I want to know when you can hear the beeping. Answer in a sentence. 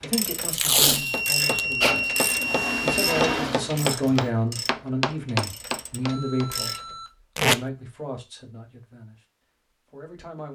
You can hear the beeping from 0.9 to 3.2 s and from 6.0 to 7.1 s.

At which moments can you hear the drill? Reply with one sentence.
You can hear the drill from 1.8 to 4.3 s.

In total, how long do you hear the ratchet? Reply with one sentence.
The ratchet can be heard for 7 seconds in total.